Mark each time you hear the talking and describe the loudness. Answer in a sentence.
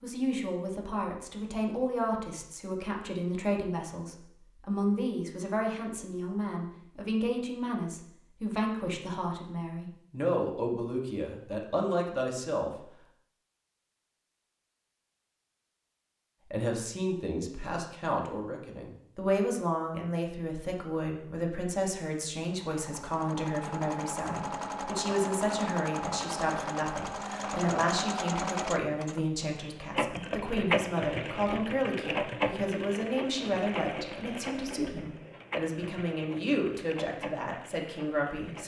You can hear the talking from 0.0 to 12.8 s, at a steady volume; and from 16.5 to 38.6 s, at a steady volume.